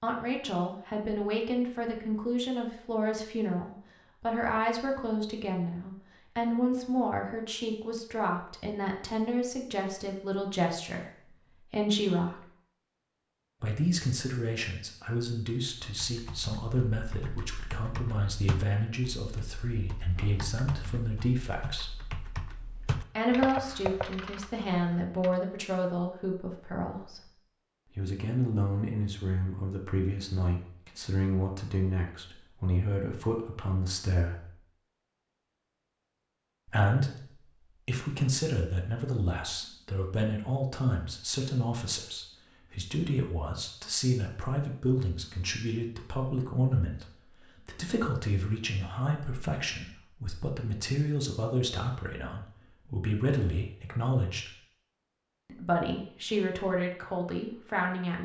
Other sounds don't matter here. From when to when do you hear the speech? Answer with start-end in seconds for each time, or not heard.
0.0-12.4, 13.6-21.9, 23.1-34.5, 36.6-54.5, 55.5-58.1.